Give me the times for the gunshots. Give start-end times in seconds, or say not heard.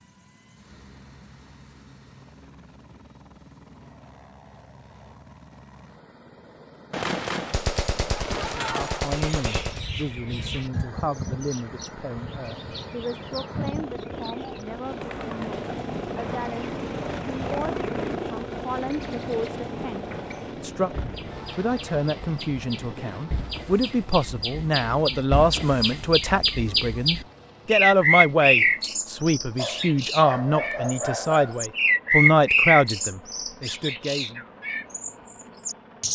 6.9-9.8.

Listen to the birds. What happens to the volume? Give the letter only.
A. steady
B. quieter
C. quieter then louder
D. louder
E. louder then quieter
D.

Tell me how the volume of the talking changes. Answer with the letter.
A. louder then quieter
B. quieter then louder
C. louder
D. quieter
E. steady
C.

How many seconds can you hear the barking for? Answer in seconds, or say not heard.
2 s.